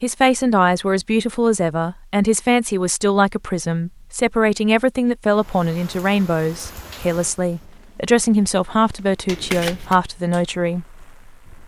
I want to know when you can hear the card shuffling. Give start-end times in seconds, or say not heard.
9.2-9.9.